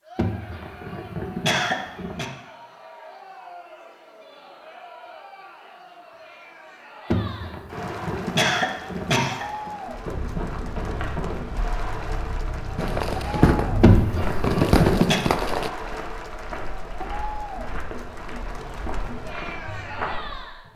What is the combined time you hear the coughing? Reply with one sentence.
You can hear the coughing for 6 seconds altogether.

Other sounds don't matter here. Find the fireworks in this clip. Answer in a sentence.
The fireworks can be heard from 12.8 to 15.7 s.